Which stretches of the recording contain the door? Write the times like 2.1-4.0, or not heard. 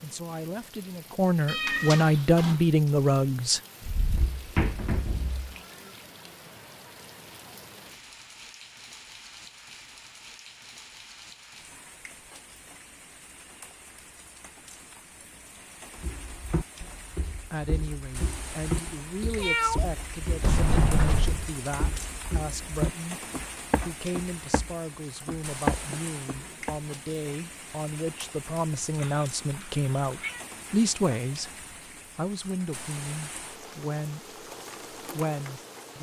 3.8-5.5, 20.4-21.4, 25.9-27.0.